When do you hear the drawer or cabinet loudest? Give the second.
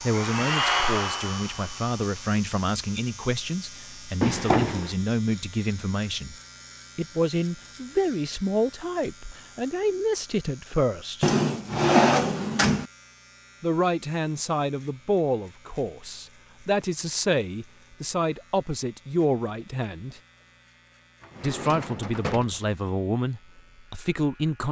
12 s.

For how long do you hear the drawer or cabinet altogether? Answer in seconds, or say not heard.
4 s.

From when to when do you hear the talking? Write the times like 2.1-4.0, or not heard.
0.0-6.3, 7.0-11.3, 13.6-20.2, 21.4-24.6.